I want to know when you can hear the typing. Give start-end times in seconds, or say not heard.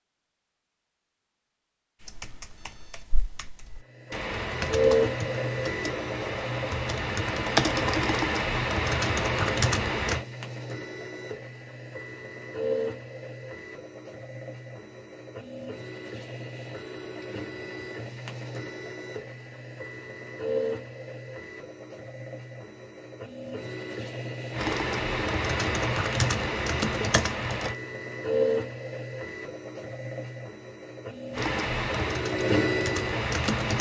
2.0-10.2, 24.5-27.8, 31.3-33.7.